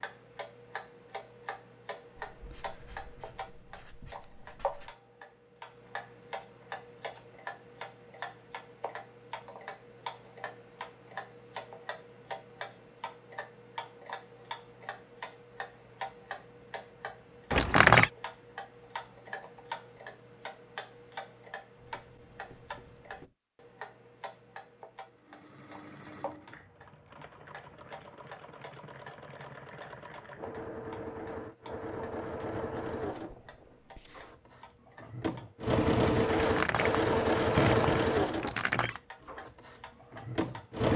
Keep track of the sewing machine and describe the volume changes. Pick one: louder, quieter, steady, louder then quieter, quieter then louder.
louder.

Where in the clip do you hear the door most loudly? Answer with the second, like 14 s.
18 s.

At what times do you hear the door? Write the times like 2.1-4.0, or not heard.
17.5-18.1, 36.3-39.0.